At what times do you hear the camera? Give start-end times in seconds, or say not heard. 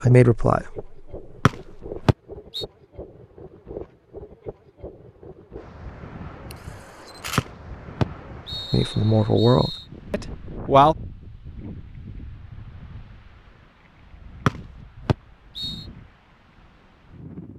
6.5-7.5.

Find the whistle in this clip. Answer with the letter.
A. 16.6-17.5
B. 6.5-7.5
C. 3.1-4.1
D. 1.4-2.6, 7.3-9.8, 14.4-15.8
D.